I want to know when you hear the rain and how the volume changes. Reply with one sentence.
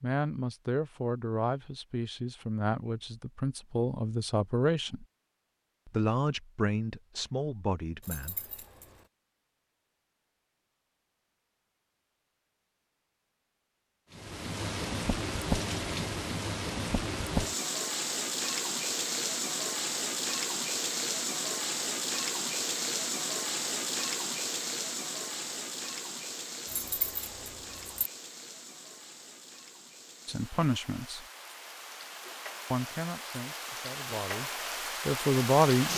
You can hear the rain from 14.1 to 35.9 s, getting quieter then louder.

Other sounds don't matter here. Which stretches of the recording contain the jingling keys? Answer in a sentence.
The jingling keys can be heard from 8.0 to 9.1 s and from 26.6 to 28.1 s.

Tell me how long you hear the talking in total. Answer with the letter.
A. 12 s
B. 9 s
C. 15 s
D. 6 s
A.